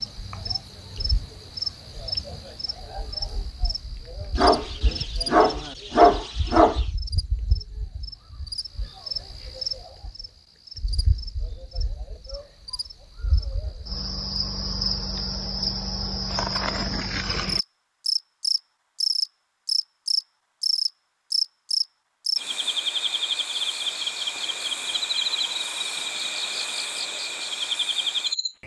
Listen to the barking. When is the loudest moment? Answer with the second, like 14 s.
6 s.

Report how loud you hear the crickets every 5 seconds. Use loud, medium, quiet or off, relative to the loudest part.
medium, medium, medium, loud, loud, loud.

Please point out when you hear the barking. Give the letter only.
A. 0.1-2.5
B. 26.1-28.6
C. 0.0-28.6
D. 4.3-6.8
D.